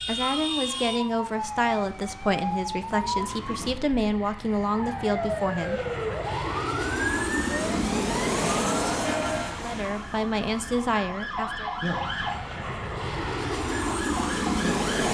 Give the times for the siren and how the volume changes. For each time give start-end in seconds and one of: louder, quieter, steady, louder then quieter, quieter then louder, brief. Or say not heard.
0.0-15.0 steady.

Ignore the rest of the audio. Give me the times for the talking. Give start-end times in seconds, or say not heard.
0.1-5.8, 9.5-11.7.